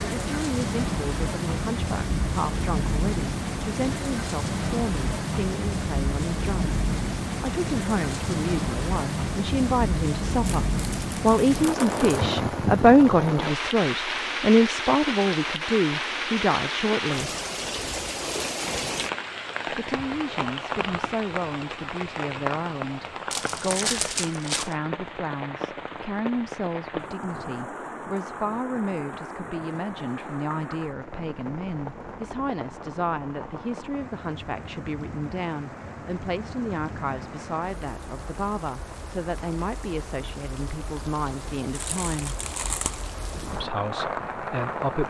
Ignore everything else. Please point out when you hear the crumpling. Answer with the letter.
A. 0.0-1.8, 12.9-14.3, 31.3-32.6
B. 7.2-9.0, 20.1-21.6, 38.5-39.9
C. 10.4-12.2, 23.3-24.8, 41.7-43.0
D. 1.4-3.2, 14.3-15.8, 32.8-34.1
C.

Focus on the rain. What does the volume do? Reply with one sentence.
The volume of the rain goes down.